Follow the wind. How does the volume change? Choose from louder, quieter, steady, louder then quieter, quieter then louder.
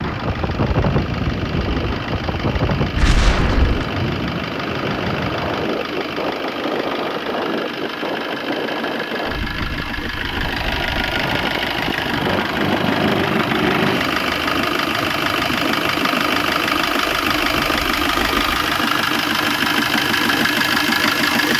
quieter.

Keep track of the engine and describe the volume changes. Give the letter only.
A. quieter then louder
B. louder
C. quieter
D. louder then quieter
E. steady
B.